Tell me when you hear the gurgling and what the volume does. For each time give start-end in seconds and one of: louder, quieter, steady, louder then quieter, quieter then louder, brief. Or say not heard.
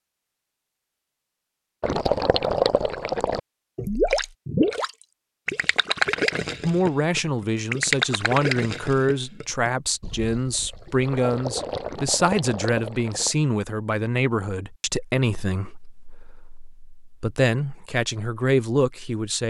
1.8-13.3 quieter then louder.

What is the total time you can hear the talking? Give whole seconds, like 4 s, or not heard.
13 s.